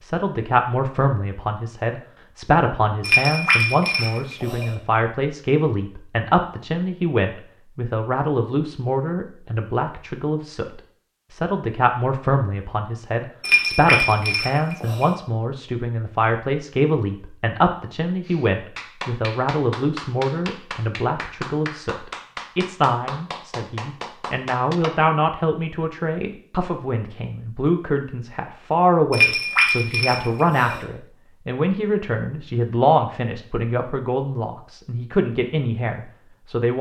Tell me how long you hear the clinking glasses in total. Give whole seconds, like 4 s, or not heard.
5 s.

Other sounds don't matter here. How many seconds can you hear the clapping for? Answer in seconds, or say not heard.
7 s.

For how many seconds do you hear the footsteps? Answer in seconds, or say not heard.
not heard.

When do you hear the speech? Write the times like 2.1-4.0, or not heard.
0.0-36.7.